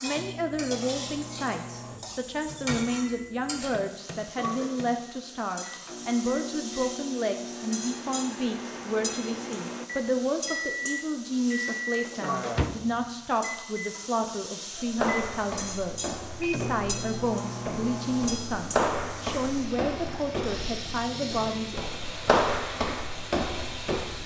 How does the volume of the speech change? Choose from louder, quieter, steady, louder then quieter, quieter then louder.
steady.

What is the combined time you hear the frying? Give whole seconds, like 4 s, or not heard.
24 s.